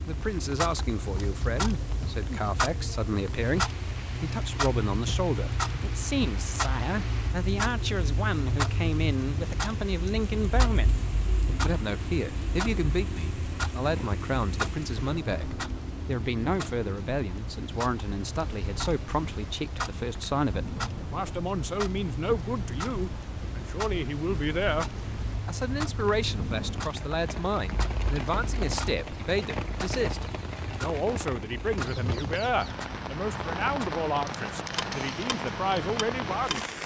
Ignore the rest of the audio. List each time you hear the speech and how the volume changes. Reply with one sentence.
You can hear the speech from 0.1 to 36.6 s, at a steady volume.